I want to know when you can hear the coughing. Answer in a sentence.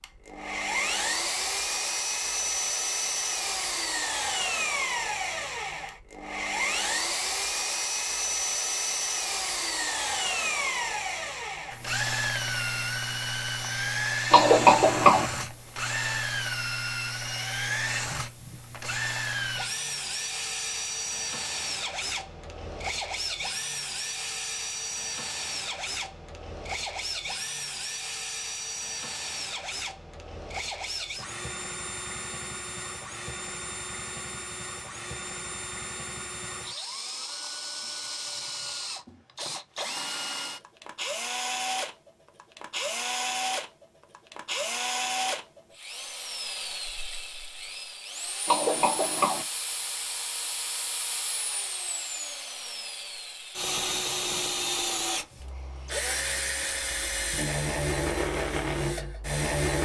You can hear the coughing from 14.3 to 15.2 s and from 48.5 to 49.5 s.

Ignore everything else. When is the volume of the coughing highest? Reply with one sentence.
The volume of the coughing peaks at 15 seconds.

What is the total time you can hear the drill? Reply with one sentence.
The drill can be heard for 60 seconds in total.